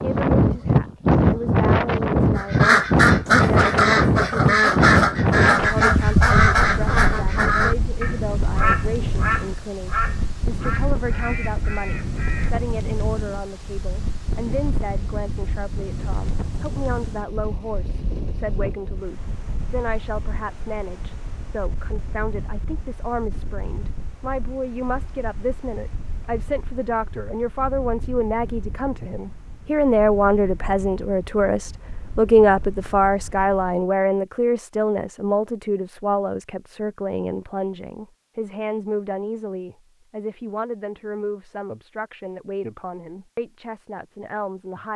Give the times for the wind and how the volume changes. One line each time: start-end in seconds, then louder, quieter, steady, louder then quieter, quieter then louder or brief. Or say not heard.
0.0-33.9 quieter.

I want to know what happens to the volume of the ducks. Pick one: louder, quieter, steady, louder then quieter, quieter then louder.
quieter.